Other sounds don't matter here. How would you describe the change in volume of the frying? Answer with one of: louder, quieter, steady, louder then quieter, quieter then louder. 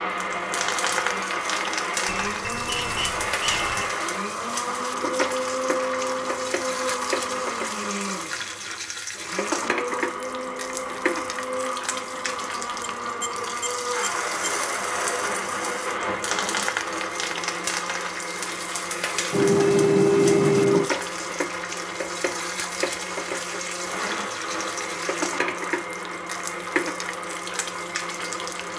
steady.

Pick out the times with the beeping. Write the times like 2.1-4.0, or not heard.
2.0-3.9, 13.0-14.3, 19.3-20.9.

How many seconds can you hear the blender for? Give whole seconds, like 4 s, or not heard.
29 s.